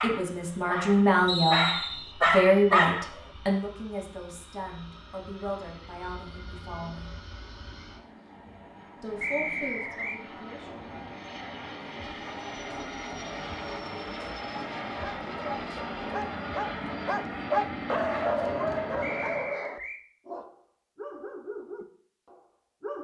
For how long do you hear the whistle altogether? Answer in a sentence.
You can hear the whistle for 3 seconds altogether.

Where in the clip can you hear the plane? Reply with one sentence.
The plane can be heard from 0.1 to 19.6 s.